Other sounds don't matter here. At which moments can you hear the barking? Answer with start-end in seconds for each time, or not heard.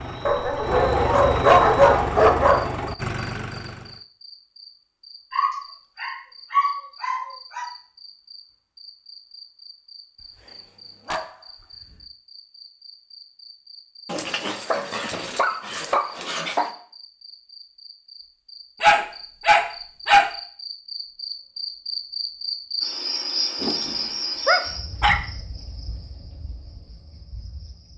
0.2-2.6, 5.3-7.7, 11.1-11.9, 14.1-16.7, 18.8-20.3, 23.6-25.2.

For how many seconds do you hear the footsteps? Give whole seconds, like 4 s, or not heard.
not heard.